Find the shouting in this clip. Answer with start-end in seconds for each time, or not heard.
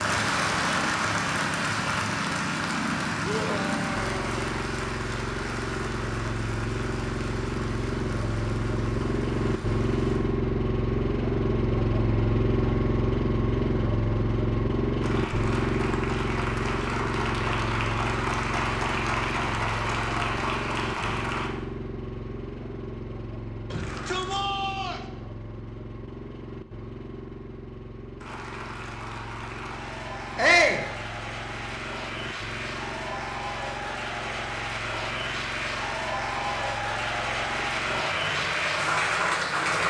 3.2-4.5, 23.7-25.0, 30.4-30.9.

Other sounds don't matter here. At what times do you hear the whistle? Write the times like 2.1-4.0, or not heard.
not heard.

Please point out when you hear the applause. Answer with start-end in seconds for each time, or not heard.
0.0-10.2, 15.0-21.5, 28.2-39.8.